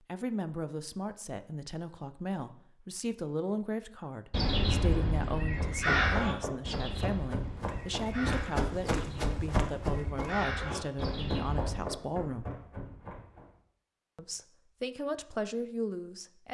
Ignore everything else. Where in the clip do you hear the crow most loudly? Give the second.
6 s.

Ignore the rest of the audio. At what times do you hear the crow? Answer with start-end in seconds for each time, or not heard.
4.3-11.9.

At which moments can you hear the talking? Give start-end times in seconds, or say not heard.
0.1-12.5, 14.2-16.4.